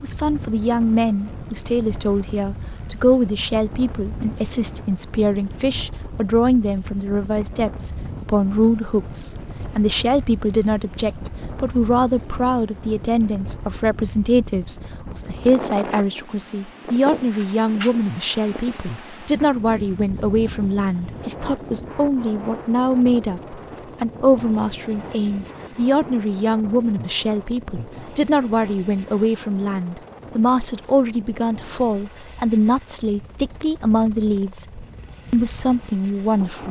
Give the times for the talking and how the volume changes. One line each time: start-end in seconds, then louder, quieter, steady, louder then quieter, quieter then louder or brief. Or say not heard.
0.0-36.6 steady.